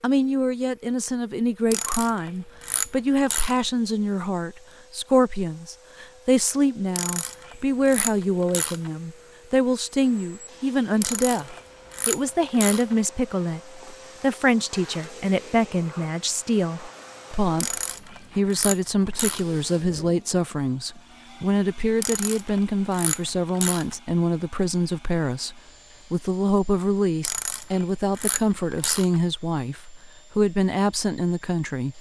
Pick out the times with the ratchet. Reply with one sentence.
You can hear the ratchet from 1.7 to 3.6 s, from 7.0 to 8.9 s, from 11.0 to 12.9 s, from 17.6 to 19.4 s, from 22.0 to 23.9 s and from 27.2 to 29.2 s.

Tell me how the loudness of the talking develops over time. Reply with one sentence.
The loudness of the talking stays about the same.